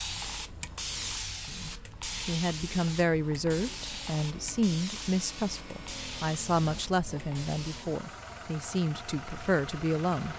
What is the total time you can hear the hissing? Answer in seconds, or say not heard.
10 s.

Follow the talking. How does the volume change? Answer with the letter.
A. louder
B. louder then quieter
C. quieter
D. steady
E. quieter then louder
D.